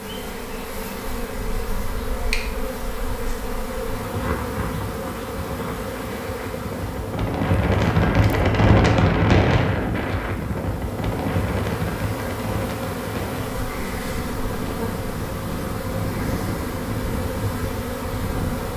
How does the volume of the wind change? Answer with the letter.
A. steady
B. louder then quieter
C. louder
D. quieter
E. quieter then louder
B.